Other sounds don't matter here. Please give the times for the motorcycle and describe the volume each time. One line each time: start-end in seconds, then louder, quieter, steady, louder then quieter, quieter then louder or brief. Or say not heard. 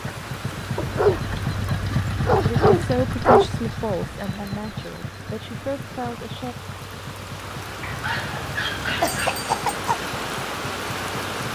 0.0-11.5 quieter.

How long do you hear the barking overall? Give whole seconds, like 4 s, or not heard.
4 s.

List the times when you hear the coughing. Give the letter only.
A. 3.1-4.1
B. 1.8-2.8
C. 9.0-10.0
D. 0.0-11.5
C.